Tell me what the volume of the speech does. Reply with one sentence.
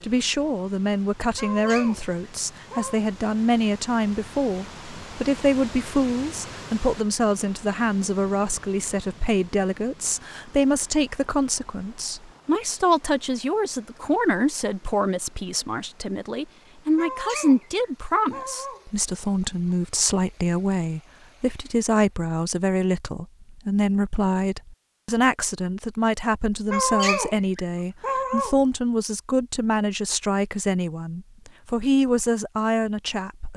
The volume of the speech stays about the same.